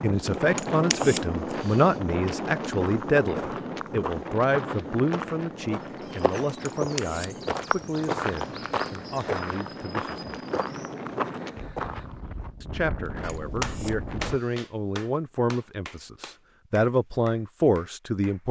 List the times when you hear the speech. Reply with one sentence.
The speech can be heard from 0.0 to 10.2 s and from 12.6 to 18.4 s.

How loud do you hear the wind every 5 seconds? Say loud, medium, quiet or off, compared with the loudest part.
loud, medium, medium, off.